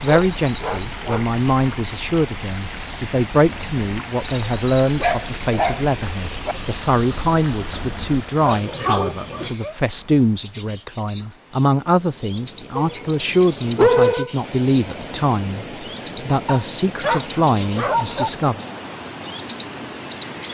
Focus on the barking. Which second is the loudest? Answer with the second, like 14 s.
14 s.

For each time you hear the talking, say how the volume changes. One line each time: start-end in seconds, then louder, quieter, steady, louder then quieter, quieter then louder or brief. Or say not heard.
0.0-18.6 steady.